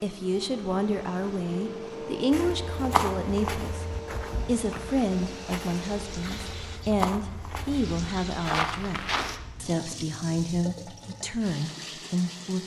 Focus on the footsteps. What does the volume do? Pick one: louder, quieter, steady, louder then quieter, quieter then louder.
quieter then louder.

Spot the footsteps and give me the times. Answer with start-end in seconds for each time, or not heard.
2.3-9.4.